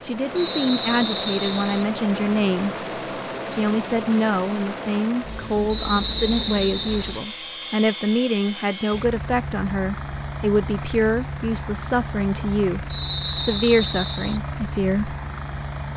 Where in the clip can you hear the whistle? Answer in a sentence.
The whistle can be heard from 0.3 to 1.9 s, from 5.7 to 7.2 s and from 12.9 to 14.4 s.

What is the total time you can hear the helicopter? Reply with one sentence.
The helicopter can be heard for 16 seconds in total.